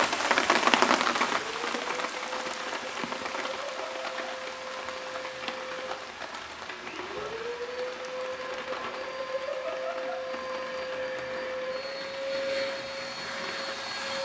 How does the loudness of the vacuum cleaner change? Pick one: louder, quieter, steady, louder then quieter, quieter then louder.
louder.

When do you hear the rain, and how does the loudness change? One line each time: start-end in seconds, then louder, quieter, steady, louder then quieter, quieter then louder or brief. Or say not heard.
0.0-14.2 quieter.